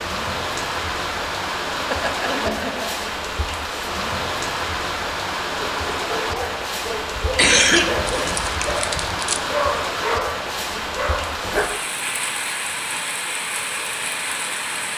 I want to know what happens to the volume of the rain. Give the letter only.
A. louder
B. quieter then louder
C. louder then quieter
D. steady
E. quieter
D.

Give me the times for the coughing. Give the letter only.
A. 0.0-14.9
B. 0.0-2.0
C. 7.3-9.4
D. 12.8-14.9
C.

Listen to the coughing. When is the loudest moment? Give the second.
8 s.